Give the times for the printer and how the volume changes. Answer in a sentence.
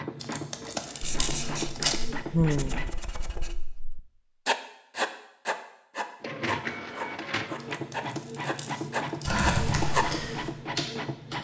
You can hear the printer briefly from 0.0 to 3.0 s; and from 6.2 to 11.3 s, at a steady volume.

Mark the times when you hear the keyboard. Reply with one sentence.
You can hear the keyboard from 9.2 to 11.3 s.